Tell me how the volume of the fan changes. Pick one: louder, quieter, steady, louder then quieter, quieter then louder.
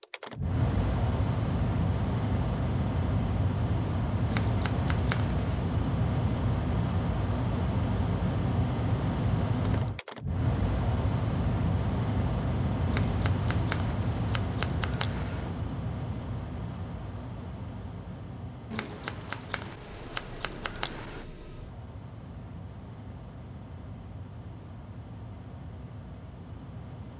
quieter.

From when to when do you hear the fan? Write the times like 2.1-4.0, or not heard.
0.0-27.1.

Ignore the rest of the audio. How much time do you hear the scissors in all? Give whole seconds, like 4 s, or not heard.
7 s.